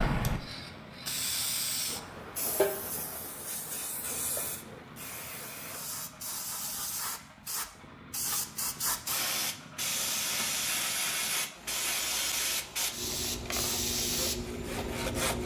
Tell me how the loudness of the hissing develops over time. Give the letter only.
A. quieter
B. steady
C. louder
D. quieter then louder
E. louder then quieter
D.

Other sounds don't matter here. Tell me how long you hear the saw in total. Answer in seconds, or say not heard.
2 s.